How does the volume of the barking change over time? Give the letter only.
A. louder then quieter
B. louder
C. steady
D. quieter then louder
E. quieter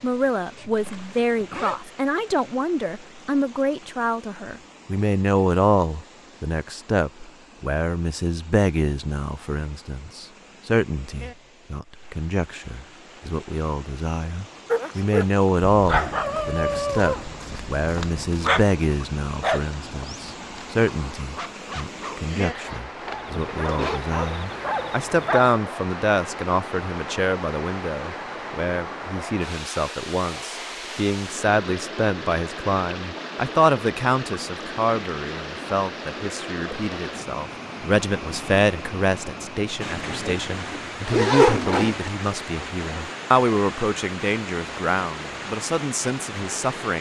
D.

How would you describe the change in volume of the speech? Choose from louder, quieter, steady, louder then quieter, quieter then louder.
steady.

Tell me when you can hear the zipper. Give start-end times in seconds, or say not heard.
0.6-1.8, 22.6-24.1, 40.1-42.1.